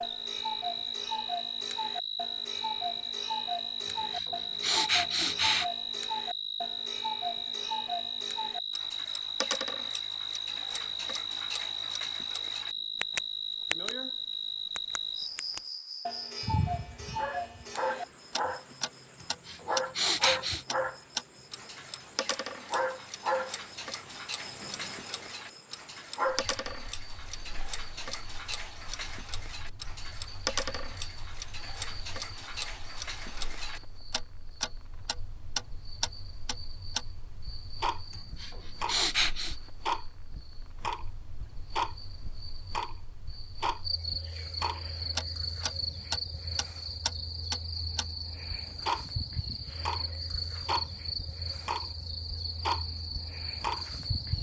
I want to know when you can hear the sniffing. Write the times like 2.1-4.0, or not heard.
3.9-5.7, 19.2-20.6, 38.1-39.5.